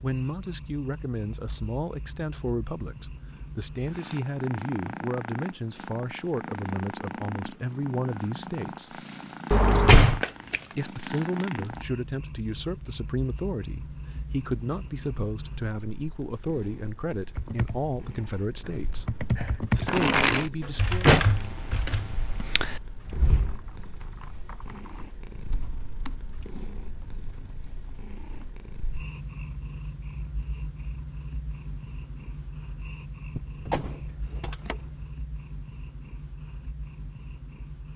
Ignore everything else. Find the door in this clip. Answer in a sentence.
The door can be heard from 9.5 to 10.2 s, from 20.6 to 21.4 s and from 33.4 to 35.0 s.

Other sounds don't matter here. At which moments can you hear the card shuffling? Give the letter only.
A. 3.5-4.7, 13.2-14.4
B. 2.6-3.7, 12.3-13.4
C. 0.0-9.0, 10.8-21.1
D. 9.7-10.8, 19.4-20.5
D.